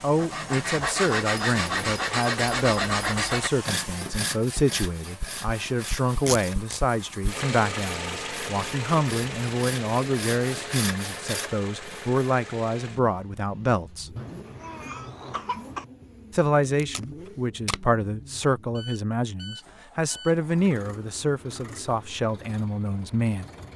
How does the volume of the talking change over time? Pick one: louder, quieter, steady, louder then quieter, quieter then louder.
steady.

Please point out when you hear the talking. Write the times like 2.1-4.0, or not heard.
0.0-14.1, 16.3-23.4.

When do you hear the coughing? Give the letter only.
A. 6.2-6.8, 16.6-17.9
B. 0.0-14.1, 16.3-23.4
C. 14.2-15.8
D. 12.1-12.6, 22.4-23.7
C.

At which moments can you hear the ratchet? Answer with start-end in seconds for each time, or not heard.
not heard.